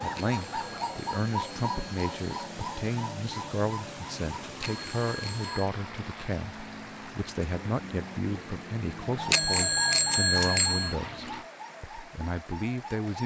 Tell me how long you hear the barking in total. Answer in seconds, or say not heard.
not heard.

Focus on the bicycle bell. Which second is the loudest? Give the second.
10 s.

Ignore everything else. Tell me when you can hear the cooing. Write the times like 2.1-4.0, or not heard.
0.0-5.6, 9.0-13.2.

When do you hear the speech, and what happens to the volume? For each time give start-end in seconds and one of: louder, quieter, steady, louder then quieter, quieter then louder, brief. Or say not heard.
0.0-13.2 steady.